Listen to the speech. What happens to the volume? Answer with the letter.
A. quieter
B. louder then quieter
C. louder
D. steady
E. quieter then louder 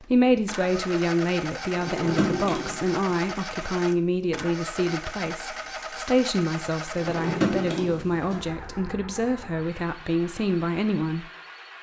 D.